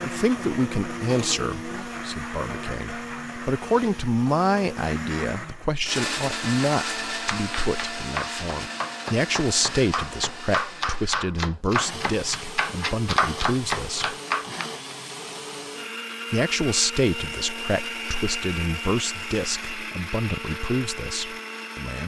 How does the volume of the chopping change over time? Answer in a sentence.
The volume of the chopping goes up.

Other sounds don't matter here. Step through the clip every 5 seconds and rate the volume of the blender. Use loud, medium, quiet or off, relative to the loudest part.
loud, loud, medium, loud, loud.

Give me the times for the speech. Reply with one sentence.
You can hear the speech from 0.0 to 14.2 s and from 16.3 to 22.0 s.